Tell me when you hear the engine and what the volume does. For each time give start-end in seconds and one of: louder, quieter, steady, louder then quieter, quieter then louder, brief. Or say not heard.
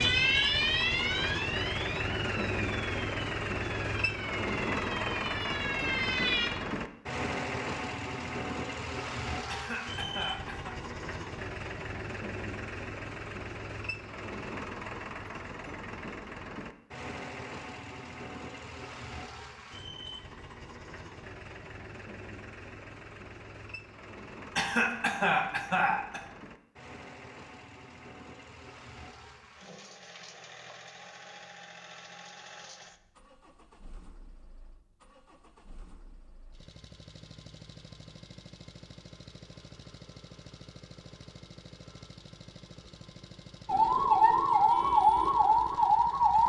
0.0-46.4 quieter.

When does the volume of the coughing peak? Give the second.
25 s.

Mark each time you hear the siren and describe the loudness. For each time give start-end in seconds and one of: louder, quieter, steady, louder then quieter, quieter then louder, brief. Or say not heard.
0.0-6.5 quieter then louder
43.6-46.4 brief.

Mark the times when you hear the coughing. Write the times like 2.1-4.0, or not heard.
9.4-10.8, 24.6-26.2.